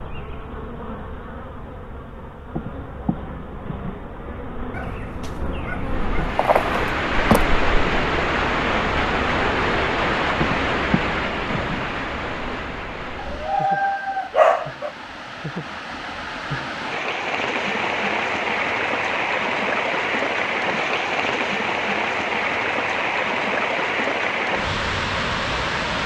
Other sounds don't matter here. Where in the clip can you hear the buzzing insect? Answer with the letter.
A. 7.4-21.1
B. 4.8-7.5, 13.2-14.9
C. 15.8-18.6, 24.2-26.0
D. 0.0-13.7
D.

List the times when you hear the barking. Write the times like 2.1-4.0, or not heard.
4.8-7.5, 13.2-14.9.